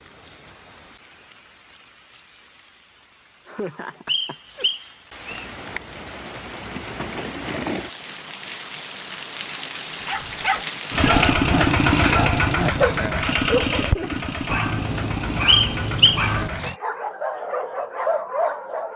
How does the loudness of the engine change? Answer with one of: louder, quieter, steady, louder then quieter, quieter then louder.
quieter.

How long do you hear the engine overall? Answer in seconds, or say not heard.
6 s.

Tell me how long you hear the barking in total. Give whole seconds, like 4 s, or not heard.
9 s.